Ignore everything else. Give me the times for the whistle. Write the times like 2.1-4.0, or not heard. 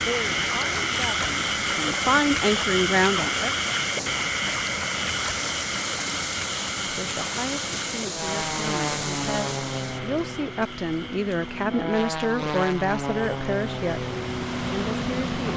not heard.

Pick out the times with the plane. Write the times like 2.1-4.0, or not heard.
8.1-15.5.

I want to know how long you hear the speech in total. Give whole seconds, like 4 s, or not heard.
12 s.